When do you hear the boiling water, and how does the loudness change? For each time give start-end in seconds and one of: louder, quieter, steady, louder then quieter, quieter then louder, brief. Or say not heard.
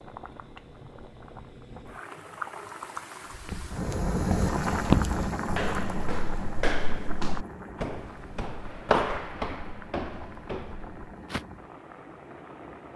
0.0-12.9 louder then quieter.